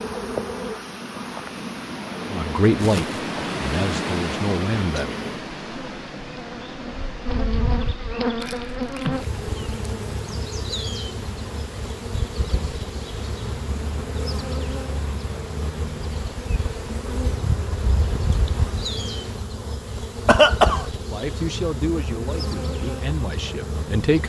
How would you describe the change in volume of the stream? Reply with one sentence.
The loudness of the stream goes down.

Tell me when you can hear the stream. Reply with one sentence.
You can hear the stream from 0.0 to 19.4 s.